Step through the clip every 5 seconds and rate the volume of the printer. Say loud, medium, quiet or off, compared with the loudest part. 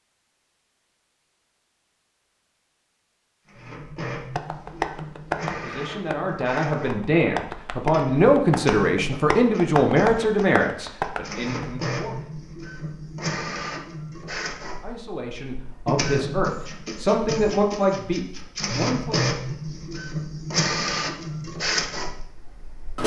medium, medium, medium, loud, loud.